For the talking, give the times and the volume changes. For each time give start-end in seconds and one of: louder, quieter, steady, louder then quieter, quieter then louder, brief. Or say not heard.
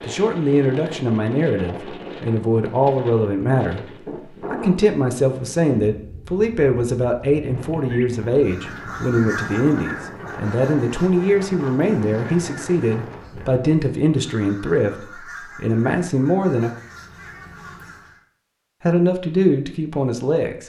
0.0-16.7 steady
18.8-20.6 brief.